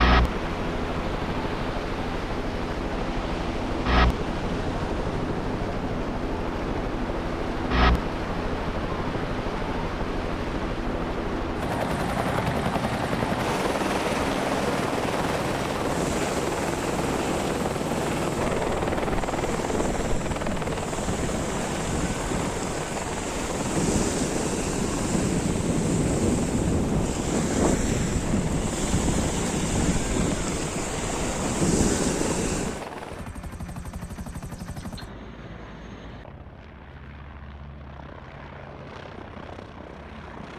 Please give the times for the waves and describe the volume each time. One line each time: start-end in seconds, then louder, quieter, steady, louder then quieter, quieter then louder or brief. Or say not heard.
0.0-32.9 louder.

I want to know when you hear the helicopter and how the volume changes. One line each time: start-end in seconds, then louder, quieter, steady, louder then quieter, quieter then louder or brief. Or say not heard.
0.0-40.5 quieter.